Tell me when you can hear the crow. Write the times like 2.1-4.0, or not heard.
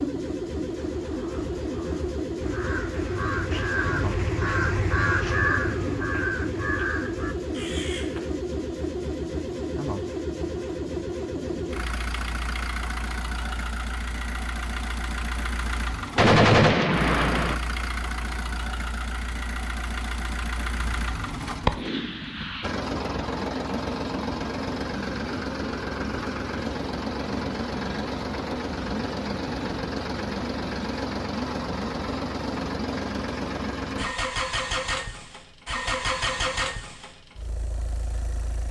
0.8-8.3.